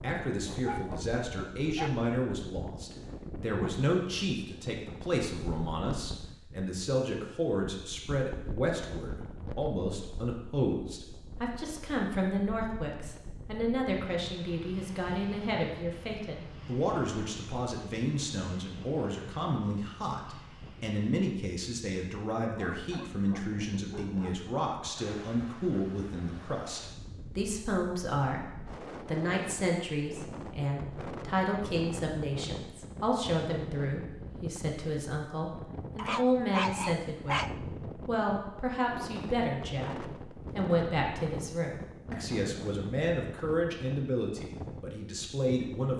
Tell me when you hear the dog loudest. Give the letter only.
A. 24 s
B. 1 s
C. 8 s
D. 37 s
D.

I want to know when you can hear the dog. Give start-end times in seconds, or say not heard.
0.3-1.9, 22.4-24.4, 36.0-37.5.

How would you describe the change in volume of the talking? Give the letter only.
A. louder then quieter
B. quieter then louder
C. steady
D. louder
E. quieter
C.